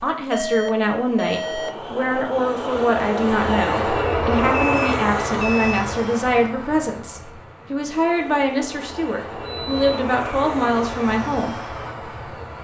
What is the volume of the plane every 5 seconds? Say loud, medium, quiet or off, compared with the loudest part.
loud, medium, medium.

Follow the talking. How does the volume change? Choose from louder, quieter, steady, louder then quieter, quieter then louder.
steady.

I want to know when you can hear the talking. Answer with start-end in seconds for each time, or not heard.
0.0-11.6.